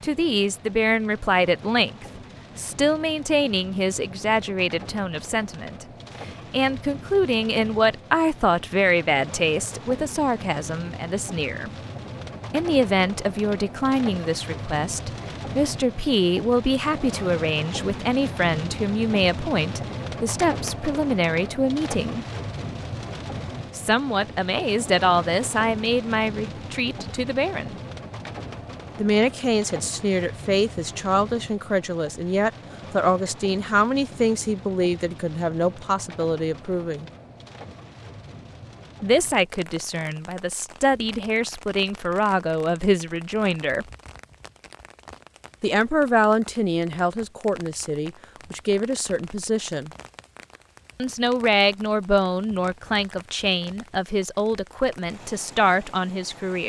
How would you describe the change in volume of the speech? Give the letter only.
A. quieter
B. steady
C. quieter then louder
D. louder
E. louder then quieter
B.